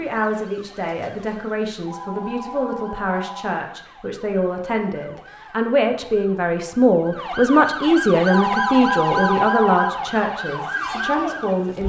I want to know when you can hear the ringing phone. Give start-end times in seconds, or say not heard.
1.9-3.5, 8.2-9.9.